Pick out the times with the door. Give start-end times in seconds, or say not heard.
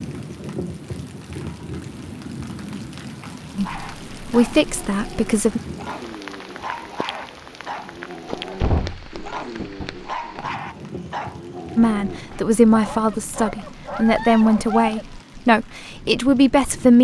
8.2-9.9.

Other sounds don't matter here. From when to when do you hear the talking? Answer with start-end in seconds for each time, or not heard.
3.5-5.6, 11.8-16.9.